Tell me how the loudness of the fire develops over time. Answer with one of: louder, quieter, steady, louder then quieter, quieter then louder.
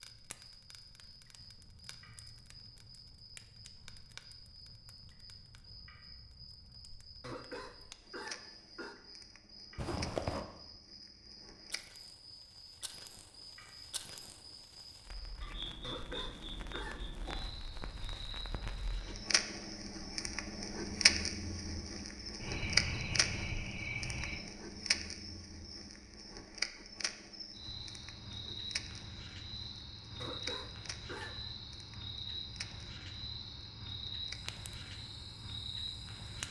louder then quieter.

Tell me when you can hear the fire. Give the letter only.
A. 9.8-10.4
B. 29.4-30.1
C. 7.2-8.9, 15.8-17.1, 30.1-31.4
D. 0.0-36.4
D.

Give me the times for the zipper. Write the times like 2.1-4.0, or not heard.
9.8-10.4.